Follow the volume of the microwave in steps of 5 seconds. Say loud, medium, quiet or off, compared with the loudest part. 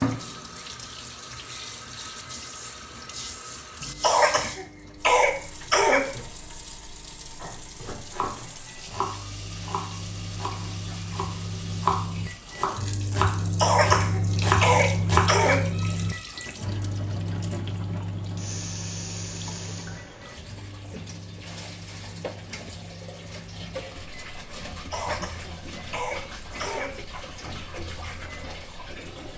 loud, quiet, loud, loud, quiet, quiet.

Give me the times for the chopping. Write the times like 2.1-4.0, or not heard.
7.4-15.3.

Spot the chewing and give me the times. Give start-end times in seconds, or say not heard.
not heard.